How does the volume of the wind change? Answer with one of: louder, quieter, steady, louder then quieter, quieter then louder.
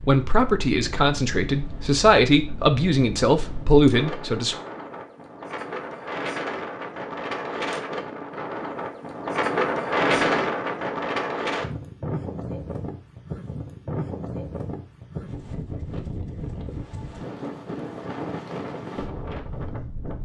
louder then quieter.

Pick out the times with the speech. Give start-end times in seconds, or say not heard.
0.0-4.5.